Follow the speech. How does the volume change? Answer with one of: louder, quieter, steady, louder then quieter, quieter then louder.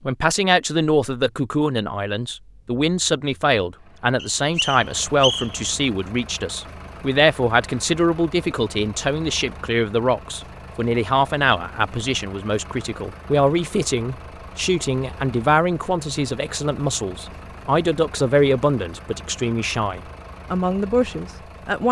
steady.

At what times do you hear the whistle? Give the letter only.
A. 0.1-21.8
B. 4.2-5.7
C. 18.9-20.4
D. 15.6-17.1
B.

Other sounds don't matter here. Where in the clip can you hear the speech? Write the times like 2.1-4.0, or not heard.
0.1-21.8.